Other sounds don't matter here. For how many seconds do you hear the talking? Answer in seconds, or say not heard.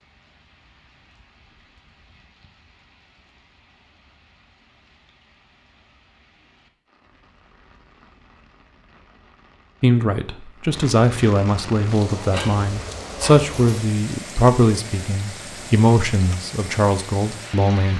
8 s.